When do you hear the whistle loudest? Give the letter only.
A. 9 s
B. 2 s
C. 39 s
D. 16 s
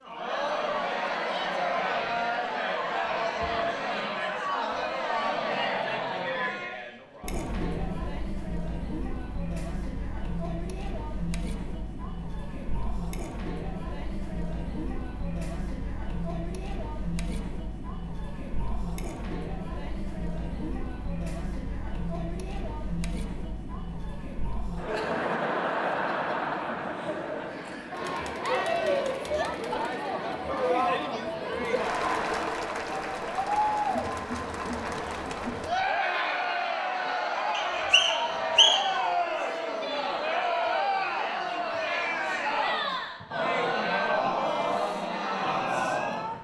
C.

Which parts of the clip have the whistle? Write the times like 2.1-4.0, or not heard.
37.5-39.0.